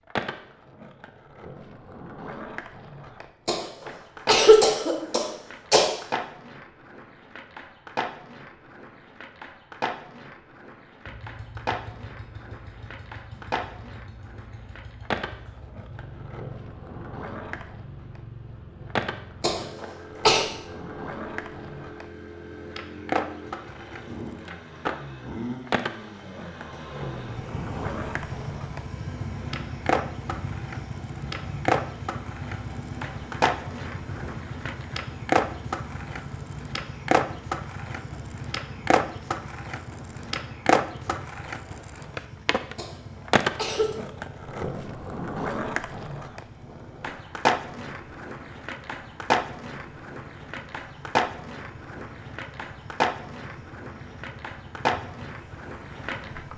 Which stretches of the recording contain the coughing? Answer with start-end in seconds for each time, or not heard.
3.5-5.8, 19.4-20.4, 42.8-44.0.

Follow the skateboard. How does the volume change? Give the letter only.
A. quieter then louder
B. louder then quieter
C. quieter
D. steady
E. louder
E.